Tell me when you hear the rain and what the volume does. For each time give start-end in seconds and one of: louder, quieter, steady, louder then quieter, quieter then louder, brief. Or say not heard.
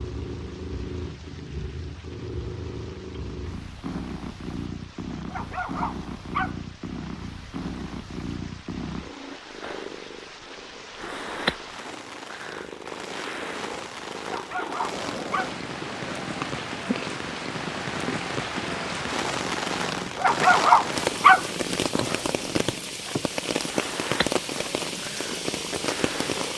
0.0-26.5 louder.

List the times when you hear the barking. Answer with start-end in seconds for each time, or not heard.
5.3-6.6, 14.2-15.6, 20.1-21.5.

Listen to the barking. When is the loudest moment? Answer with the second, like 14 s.
21 s.